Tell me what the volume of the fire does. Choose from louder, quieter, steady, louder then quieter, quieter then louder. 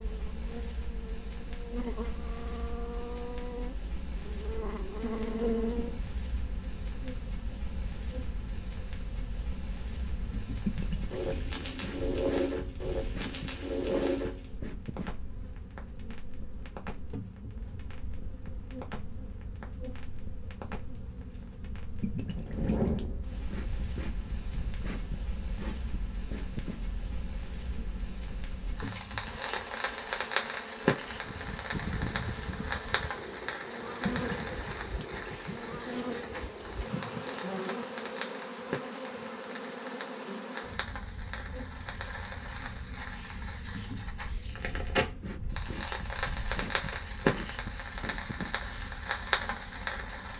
louder.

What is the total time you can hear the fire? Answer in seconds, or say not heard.
50 s.